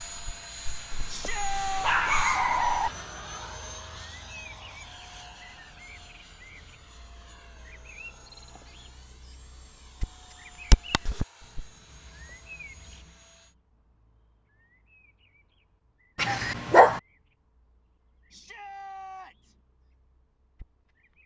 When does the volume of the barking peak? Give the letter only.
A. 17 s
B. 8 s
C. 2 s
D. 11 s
A.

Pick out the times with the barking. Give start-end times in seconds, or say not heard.
0.9-2.9, 16.1-17.0.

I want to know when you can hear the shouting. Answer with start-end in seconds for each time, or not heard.
1.1-1.9, 18.3-19.6.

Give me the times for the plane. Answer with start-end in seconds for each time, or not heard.
0.0-13.6.